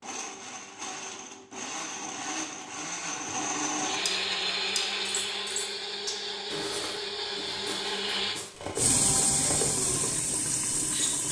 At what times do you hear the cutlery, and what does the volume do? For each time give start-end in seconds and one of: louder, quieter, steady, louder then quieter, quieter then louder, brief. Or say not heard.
4.0-11.1 quieter then louder.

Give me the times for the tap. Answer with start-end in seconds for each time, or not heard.
8.8-11.2.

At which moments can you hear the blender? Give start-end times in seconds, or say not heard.
0.0-8.4.